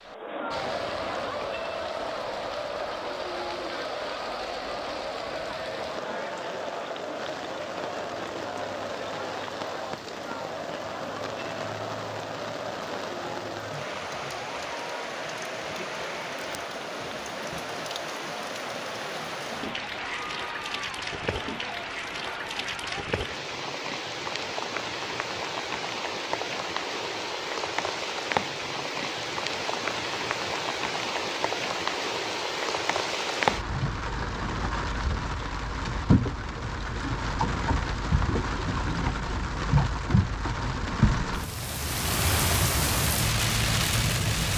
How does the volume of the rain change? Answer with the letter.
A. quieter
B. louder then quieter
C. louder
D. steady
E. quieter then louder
C.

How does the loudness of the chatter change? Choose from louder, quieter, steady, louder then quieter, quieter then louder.
quieter.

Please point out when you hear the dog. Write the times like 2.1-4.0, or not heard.
not heard.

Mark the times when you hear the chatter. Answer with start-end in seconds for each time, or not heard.
0.0-23.1.